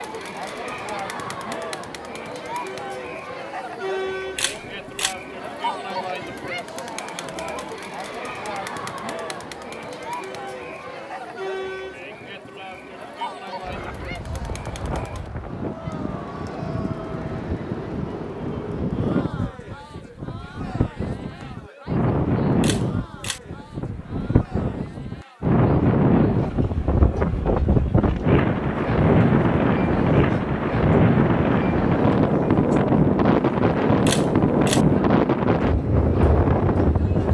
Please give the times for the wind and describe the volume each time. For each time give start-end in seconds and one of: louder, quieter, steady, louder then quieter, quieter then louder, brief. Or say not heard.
13.6-37.2 louder.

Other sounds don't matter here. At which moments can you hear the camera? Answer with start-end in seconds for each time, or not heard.
4.3-5.2, 22.6-23.4, 34.0-34.9.